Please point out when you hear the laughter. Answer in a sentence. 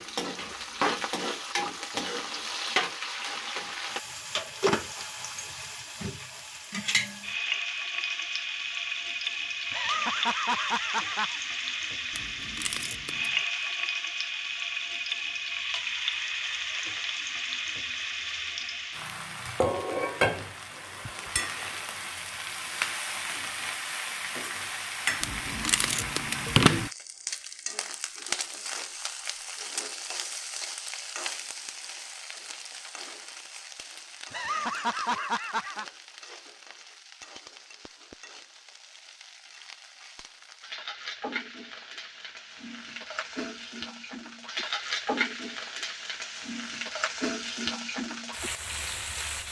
You can hear the laughter from 9.7 to 11.4 s and from 34.3 to 35.9 s.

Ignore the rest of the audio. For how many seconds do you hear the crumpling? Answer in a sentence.
You can hear the crumpling for 3 seconds altogether.